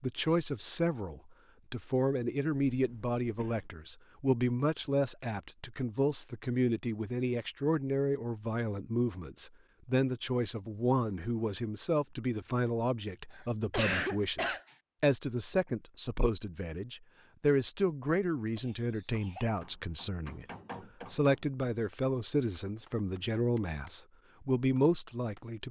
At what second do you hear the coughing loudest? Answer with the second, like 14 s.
14 s.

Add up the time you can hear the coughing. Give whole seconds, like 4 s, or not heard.
3 s.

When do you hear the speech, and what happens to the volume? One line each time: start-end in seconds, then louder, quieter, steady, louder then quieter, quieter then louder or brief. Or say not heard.
0.0-20.4 steady
21.1-25.6 quieter then louder.